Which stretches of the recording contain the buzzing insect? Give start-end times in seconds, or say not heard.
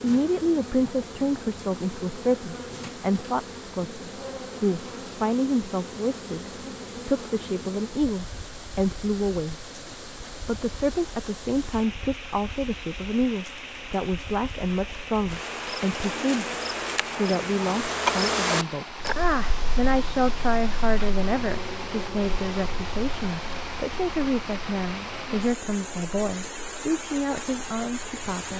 0.0-28.5.